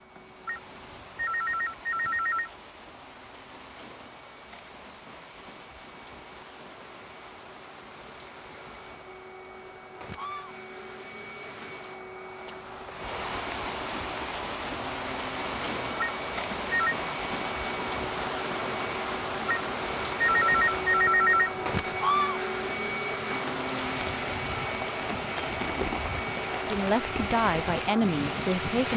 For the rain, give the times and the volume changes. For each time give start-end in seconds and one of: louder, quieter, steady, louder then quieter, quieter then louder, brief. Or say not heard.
0.0-28.9 louder.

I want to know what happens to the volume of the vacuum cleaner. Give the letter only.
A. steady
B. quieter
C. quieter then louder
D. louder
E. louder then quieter
D.